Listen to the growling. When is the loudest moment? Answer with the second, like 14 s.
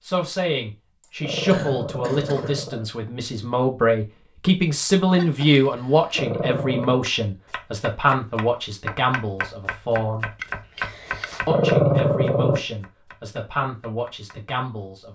12 s.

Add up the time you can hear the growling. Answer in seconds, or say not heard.
4 s.